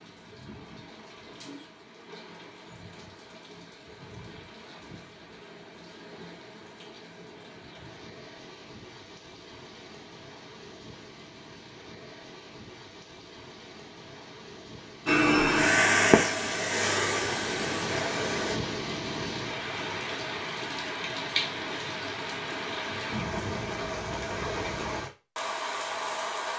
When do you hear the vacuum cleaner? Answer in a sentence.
The vacuum cleaner can be heard from 15.1 to 18.6 s.